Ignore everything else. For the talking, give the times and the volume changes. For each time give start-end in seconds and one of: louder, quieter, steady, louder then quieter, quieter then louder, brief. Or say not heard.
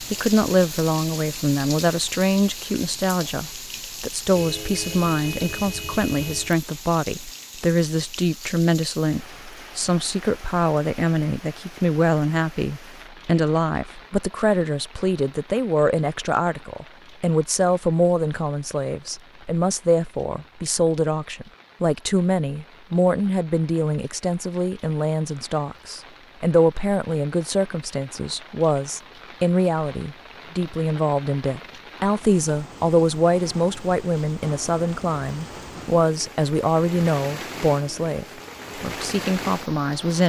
0.0-40.2 steady.